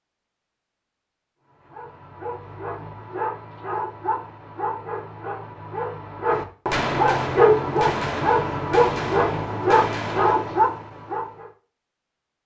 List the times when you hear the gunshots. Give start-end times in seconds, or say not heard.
6.7-10.7.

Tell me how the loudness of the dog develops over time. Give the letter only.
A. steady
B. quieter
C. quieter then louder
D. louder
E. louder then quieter
D.